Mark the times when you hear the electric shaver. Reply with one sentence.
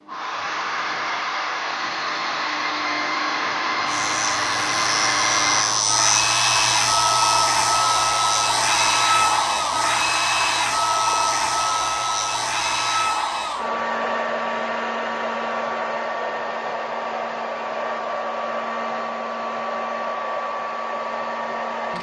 The electric shaver can be heard from 3.9 to 13.1 s.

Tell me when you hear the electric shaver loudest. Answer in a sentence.
The volume of the electric shaver peaks at 6 seconds.